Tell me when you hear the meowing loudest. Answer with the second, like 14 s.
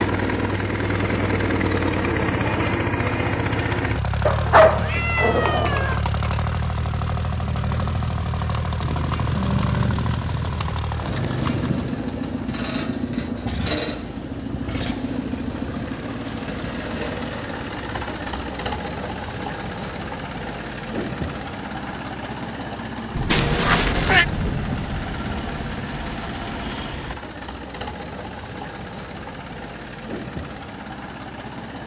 5 s.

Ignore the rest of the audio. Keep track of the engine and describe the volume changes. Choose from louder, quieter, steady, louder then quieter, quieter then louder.
quieter.